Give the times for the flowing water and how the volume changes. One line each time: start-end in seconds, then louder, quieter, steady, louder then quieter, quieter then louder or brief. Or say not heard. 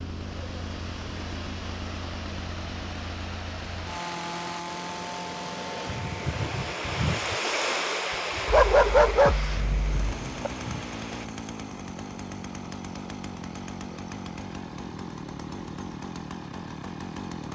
0.0-11.3 louder then quieter.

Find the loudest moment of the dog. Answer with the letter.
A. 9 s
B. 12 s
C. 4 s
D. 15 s
A.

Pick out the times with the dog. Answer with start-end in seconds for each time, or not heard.
8.4-10.3.